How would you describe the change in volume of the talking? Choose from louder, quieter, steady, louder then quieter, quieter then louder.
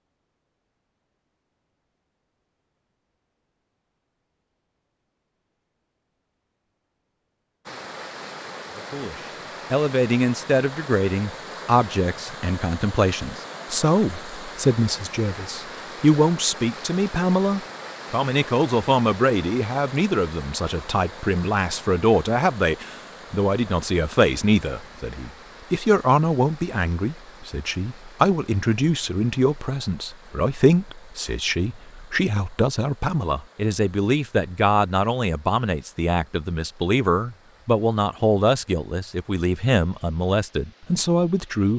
steady.